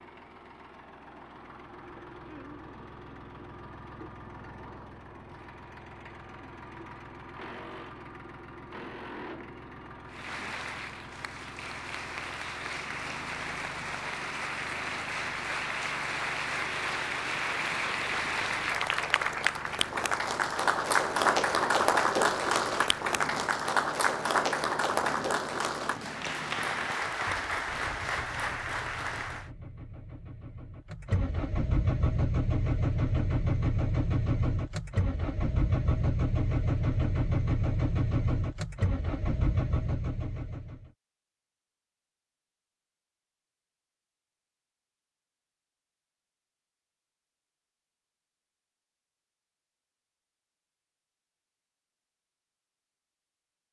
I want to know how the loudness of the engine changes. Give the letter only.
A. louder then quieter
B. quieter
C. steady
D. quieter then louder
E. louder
E.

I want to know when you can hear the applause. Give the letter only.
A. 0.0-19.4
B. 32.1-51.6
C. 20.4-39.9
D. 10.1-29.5
D.